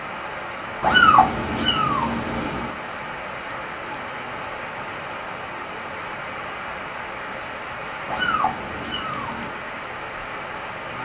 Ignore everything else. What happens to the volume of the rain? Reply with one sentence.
The loudness of the rain stays about the same.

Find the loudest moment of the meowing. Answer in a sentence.
The loudest moment of the meowing is at 1 second.